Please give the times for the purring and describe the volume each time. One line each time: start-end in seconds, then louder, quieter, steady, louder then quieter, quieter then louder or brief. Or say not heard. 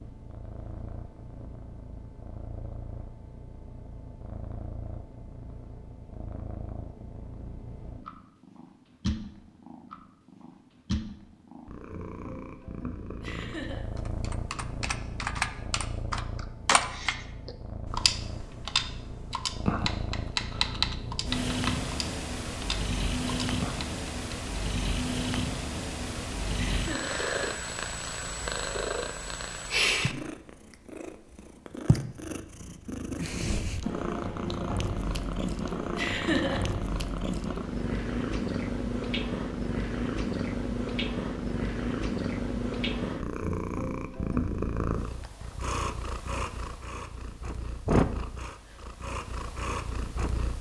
0.0-50.5 louder.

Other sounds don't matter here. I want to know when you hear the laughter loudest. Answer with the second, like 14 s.
36 s.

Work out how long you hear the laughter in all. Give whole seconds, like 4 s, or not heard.
2 s.